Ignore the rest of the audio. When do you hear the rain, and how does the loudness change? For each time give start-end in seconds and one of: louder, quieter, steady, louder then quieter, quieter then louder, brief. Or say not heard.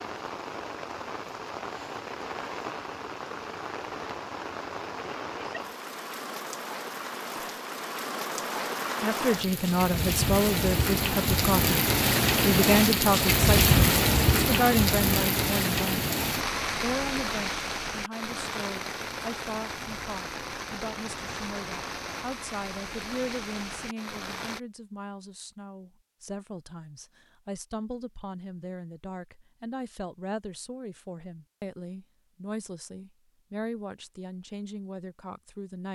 0.0-24.6 louder then quieter.